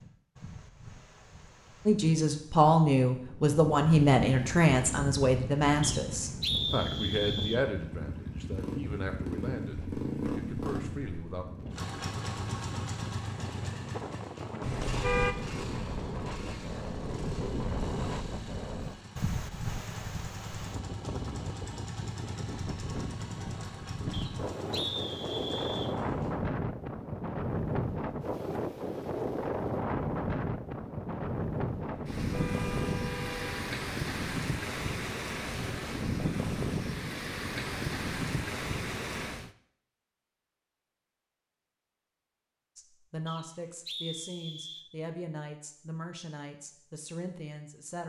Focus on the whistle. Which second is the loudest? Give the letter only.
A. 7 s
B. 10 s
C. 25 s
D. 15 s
A.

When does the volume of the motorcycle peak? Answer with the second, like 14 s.
10 s.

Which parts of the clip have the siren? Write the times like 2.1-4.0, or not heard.
not heard.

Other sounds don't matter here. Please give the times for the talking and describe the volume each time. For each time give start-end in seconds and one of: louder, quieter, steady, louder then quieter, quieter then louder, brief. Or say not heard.
1.9-11.4 quieter
42.8-48.0 steady.